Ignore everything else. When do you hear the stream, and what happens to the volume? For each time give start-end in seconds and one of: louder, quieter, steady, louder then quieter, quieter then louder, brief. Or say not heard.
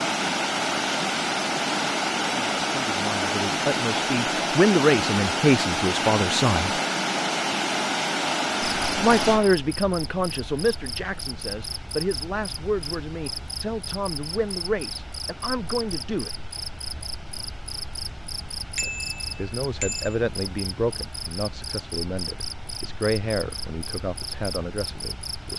0.0-25.5 quieter.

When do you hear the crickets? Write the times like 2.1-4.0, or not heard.
8.6-25.5.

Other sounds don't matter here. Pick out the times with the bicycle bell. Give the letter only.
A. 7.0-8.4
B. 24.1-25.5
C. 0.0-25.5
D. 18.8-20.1
D.